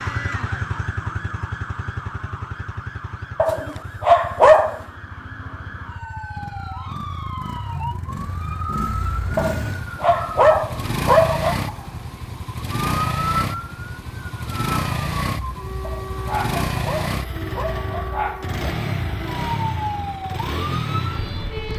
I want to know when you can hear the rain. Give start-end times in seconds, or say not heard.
not heard.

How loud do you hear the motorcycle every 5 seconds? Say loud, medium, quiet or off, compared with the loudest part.
medium, medium, loud, loud, loud.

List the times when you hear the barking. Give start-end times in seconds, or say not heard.
3.4-4.8, 9.3-11.6, 15.8-18.1.